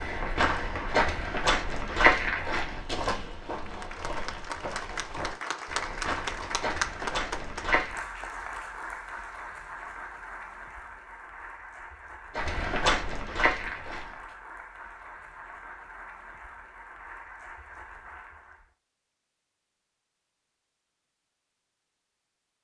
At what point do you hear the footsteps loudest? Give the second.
2 s.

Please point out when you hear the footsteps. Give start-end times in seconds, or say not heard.
0.0-8.1, 12.3-14.3.